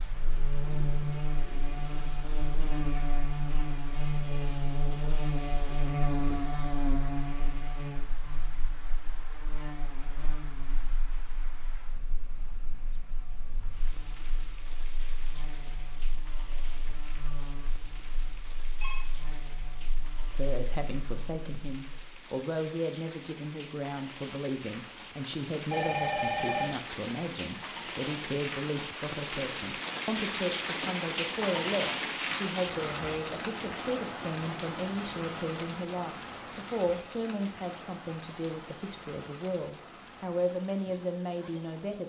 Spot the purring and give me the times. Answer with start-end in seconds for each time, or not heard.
not heard.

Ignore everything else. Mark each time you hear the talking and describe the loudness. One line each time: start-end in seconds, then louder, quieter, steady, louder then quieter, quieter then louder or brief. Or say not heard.
20.4-42.0 steady.